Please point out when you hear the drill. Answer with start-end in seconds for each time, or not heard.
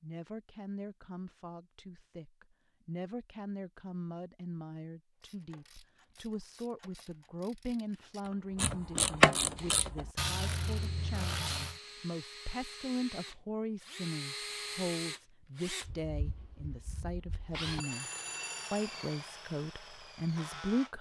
9.6-20.9.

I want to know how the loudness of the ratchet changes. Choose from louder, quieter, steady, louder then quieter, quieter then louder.
louder then quieter.